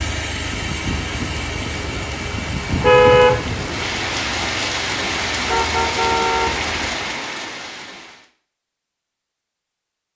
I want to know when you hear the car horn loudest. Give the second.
3 s.